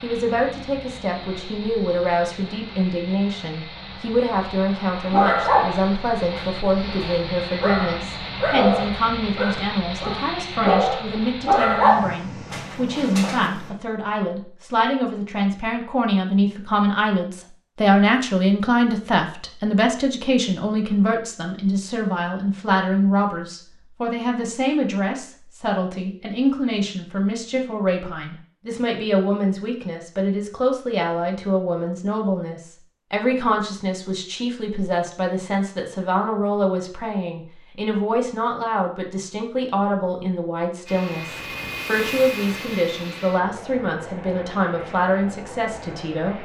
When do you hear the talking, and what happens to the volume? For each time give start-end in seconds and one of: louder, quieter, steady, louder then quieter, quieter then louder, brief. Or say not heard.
0.0-46.3 steady.